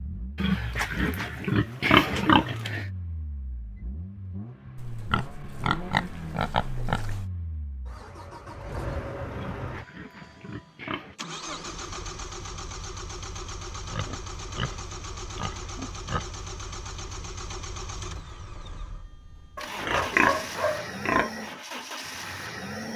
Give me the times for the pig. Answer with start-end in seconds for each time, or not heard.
0.3-2.9, 4.8-7.2, 9.3-11.2, 13.8-16.4, 19.6-21.3.